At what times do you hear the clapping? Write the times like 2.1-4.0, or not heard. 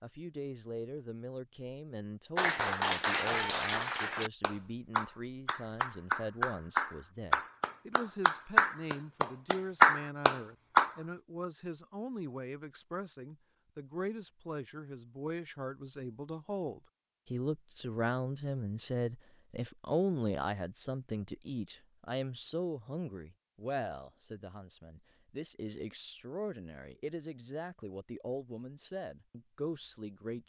2.4-10.9.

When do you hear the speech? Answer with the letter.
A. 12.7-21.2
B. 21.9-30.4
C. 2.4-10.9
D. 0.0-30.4
D.